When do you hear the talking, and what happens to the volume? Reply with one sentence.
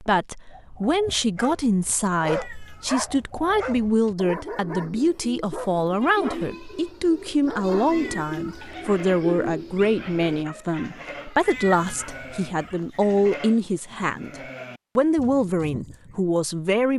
You can hear the talking from 0.0 to 16.9 s, at a steady volume.